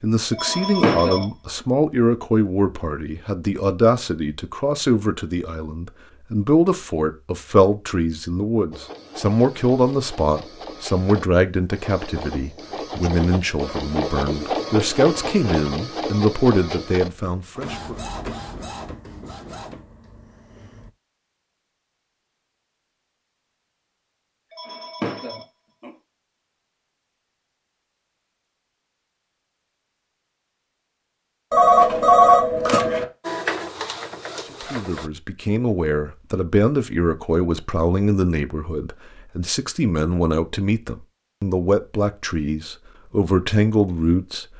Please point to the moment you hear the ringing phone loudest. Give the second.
32 s.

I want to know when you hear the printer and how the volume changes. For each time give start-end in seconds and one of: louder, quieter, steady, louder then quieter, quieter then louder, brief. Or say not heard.
8.7-20.9 louder then quieter
33.2-35.1 brief.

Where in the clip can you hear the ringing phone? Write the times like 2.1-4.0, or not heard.
0.3-1.2, 24.5-25.9, 31.5-33.0.